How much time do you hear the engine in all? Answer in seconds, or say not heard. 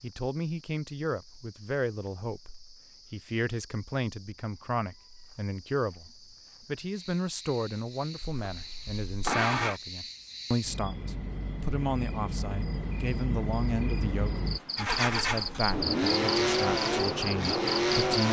5 s.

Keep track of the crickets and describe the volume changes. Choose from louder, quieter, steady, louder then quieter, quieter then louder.
louder.